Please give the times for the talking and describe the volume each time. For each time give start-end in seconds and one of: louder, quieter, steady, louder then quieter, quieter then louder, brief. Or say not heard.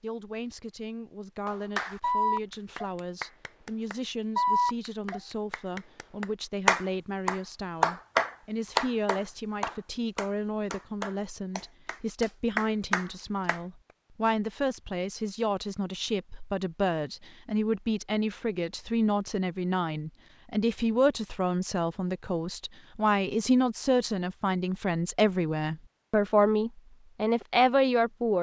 0.0-28.3 louder.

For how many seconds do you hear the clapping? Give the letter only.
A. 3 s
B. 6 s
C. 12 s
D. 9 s
C.